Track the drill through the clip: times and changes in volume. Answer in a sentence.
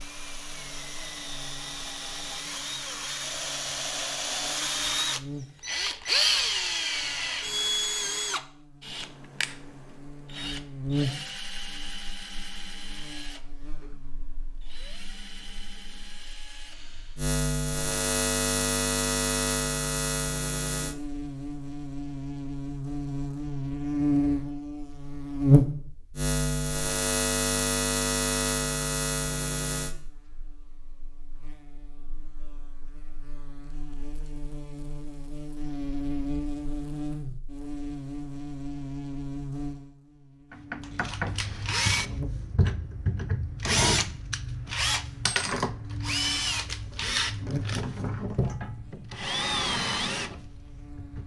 The drill can be heard from 0.0 to 17.3 s, getting louder then quieter; and from 40.5 to 51.2 s, at a steady volume.